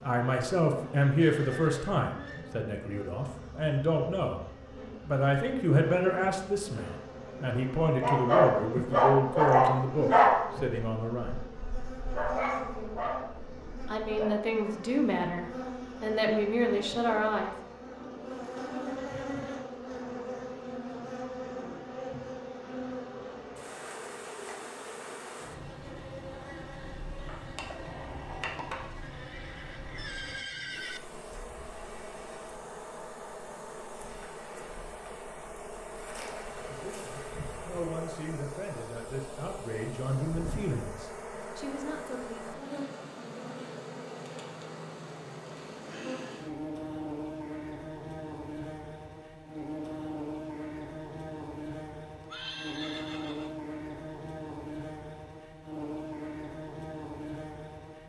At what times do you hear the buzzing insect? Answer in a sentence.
The buzzing insect can be heard from 0.0 to 58.0 s.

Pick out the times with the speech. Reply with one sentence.
The speech can be heard from 0.0 to 4.4 s, from 5.0 to 11.3 s, from 13.8 to 17.6 s and from 36.5 to 42.5 s.